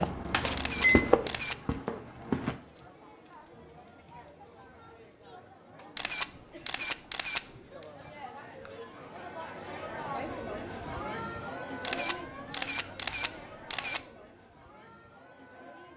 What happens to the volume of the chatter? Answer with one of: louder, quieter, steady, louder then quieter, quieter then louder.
louder then quieter.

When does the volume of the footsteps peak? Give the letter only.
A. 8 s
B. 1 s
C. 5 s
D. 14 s
B.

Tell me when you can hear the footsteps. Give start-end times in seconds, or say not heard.
0.0-2.5.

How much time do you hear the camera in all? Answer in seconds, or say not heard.
5 s.